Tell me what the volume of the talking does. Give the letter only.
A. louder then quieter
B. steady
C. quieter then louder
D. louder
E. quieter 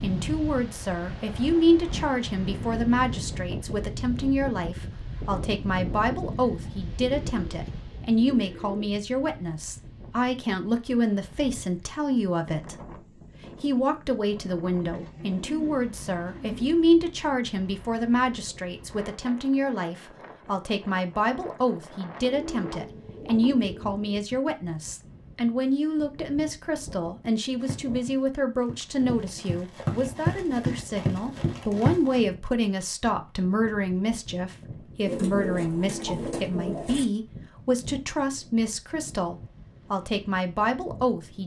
B.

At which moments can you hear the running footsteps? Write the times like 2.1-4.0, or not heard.
27.6-32.2.